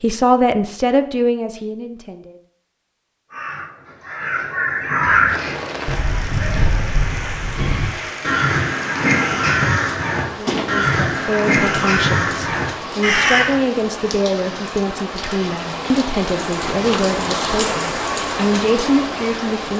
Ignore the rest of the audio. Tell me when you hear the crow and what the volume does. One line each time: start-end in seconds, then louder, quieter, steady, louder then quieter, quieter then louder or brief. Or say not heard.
3.3-13.6 quieter then louder.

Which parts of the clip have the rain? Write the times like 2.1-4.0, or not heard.
5.2-19.7.